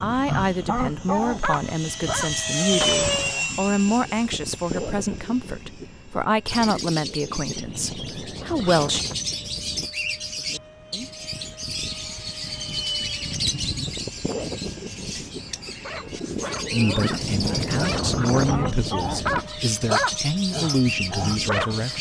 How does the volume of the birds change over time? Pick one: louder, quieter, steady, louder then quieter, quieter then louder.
steady.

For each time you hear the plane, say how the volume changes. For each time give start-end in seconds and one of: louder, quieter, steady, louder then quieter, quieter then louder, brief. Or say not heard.
0.0-21.9 quieter then louder.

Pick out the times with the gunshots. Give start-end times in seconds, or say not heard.
2.8-3.4.